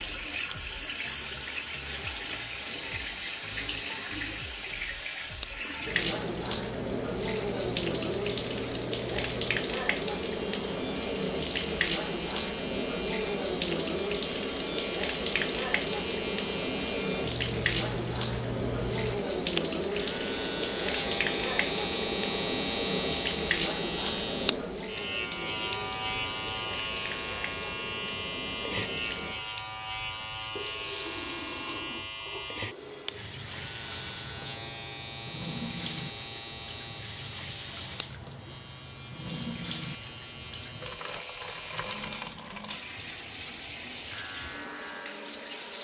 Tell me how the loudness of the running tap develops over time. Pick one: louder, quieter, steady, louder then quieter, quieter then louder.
quieter.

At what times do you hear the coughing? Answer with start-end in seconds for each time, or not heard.
not heard.